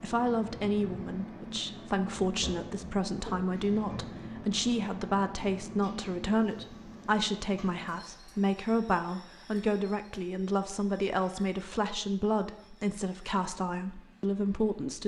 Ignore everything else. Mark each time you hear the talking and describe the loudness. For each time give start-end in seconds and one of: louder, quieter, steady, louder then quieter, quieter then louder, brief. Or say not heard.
0.0-15.0 steady.